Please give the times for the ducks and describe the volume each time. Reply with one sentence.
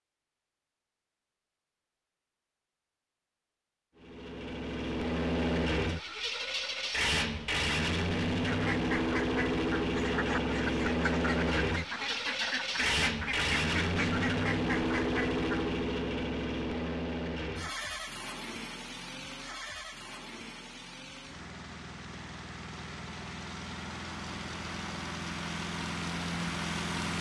The ducks can be heard from 8.4 to 15.4 s, at a steady volume.